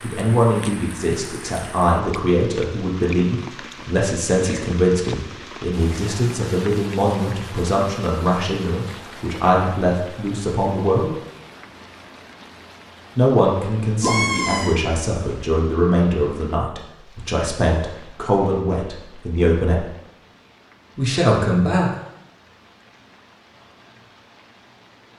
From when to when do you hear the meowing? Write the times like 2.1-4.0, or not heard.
14.0-14.8.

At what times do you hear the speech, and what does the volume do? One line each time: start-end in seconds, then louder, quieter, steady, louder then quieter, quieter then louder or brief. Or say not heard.
0.0-11.1 steady
13.2-19.9 steady
20.9-21.9 brief.